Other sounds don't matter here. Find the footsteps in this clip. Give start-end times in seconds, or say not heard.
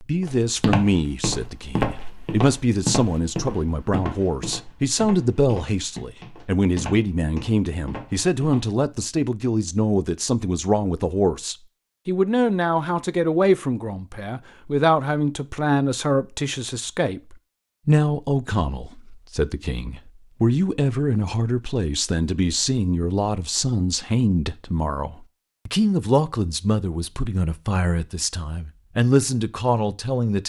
0.2-8.8.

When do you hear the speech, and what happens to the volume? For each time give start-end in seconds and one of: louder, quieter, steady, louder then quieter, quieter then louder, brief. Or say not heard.
0.0-30.4 steady.